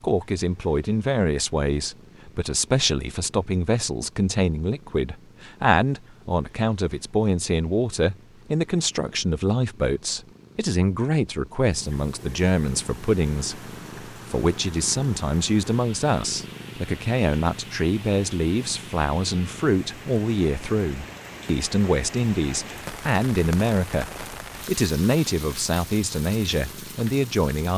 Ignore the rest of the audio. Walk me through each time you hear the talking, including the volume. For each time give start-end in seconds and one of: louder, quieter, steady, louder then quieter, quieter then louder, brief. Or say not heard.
0.0-27.7 steady.